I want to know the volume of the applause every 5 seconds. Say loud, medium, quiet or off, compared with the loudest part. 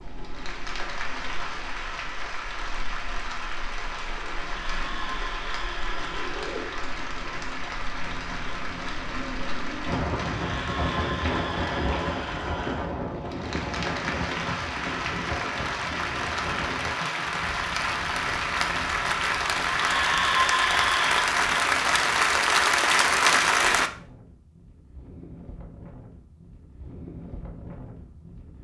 quiet, quiet, quiet, medium, loud, off.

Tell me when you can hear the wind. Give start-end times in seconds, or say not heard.
0.0-28.5.